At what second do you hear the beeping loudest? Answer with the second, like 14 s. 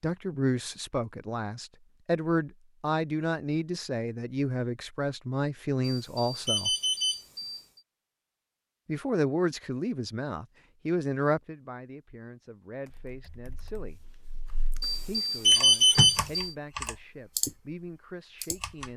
16 s.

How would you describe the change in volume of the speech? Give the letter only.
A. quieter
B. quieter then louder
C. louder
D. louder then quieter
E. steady
A.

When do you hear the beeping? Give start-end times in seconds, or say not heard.
5.8-7.6, 14.8-16.5.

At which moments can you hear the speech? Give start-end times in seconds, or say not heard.
0.0-6.8, 8.8-14.0, 15.1-18.9.